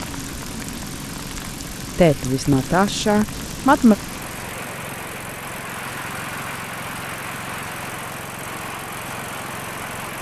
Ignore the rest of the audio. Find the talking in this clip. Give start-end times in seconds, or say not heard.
1.9-4.0.